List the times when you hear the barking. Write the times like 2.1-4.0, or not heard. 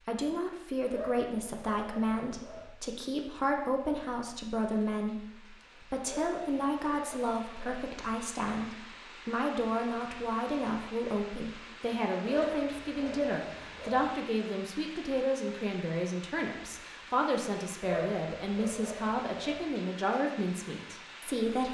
0.8-2.6, 6.0-7.8, 12.2-14.1, 17.8-19.6.